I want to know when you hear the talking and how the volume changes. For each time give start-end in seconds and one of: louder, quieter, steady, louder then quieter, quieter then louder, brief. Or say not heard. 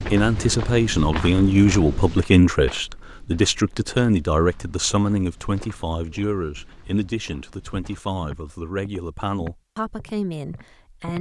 0.1-11.1 quieter.